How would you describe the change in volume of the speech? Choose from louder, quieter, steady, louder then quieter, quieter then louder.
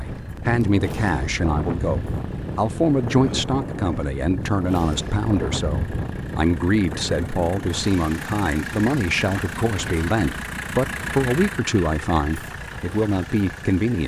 steady.